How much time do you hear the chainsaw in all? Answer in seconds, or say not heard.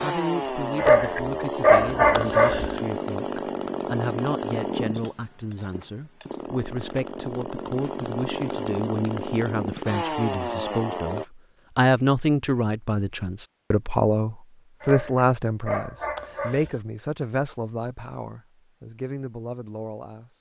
11 s.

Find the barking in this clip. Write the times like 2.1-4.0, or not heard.
0.8-2.8, 14.8-16.8.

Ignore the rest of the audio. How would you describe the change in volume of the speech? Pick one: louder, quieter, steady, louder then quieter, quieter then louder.
louder then quieter.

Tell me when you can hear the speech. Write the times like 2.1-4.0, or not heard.
0.0-20.3.